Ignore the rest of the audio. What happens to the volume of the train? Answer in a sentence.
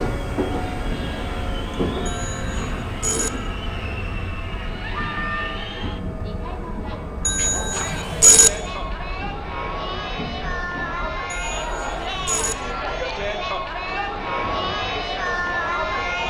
The volume of the train goes down.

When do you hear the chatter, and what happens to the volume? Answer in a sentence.
You can hear the chatter from 0.2 to 16.2 s, getting louder.